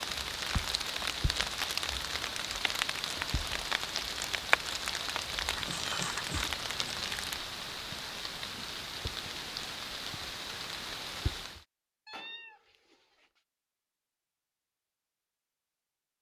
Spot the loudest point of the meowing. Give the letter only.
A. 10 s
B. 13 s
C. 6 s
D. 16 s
C.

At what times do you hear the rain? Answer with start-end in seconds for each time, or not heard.
0.0-11.7.